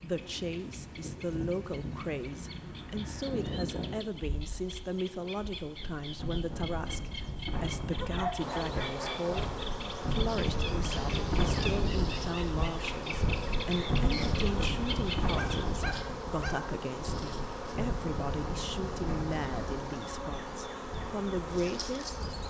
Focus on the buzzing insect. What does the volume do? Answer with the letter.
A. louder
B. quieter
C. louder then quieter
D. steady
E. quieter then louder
D.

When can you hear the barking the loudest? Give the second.
8 s.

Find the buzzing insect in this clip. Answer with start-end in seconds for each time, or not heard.
8.3-22.4.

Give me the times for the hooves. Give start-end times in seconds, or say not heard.
not heard.